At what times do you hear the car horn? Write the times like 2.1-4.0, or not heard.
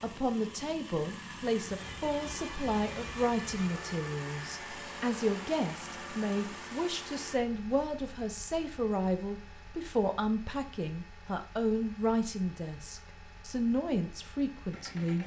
not heard.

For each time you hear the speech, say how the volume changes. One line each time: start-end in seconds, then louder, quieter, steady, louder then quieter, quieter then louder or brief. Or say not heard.
0.0-15.2 steady.